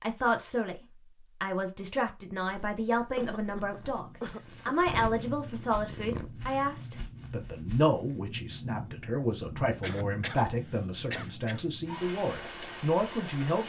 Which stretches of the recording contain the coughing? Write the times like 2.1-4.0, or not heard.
3.1-4.8, 9.8-11.7.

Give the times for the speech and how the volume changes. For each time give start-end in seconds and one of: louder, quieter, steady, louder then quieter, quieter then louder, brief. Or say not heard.
0.0-0.8 brief
1.4-13.6 steady.